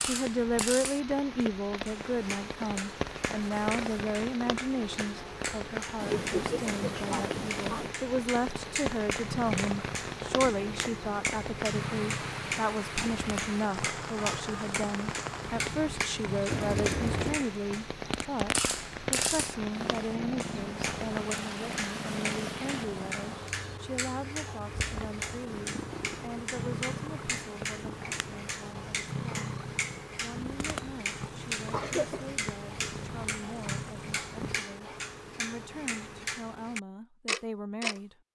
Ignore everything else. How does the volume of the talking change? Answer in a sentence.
The loudness of the talking goes down.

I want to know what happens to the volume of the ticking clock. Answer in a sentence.
The volume of the ticking clock stays about the same.